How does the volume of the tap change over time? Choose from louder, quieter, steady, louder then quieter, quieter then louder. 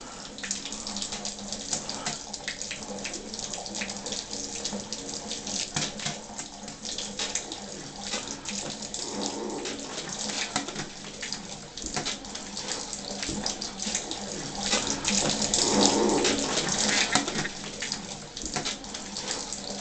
louder.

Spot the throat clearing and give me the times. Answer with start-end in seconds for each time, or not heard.
16.7-17.5.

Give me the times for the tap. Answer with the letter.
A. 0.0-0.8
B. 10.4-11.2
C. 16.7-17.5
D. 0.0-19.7
D.